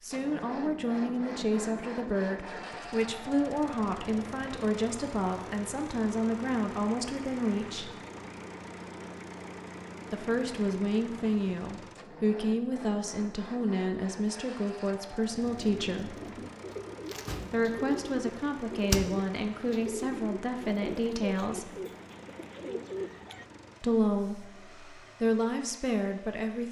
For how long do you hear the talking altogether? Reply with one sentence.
You can hear the talking for 20 seconds altogether.